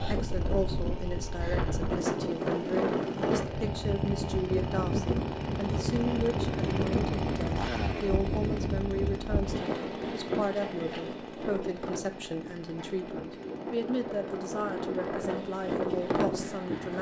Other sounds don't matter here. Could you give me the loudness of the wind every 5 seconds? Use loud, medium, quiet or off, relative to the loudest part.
loud, loud, medium, loud.